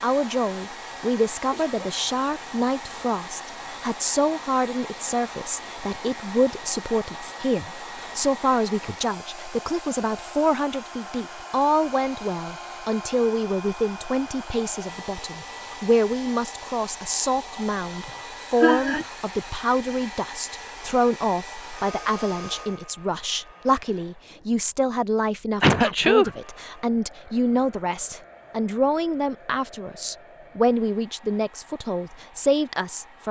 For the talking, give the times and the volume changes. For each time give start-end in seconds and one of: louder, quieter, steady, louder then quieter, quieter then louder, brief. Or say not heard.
0.0-33.2 steady.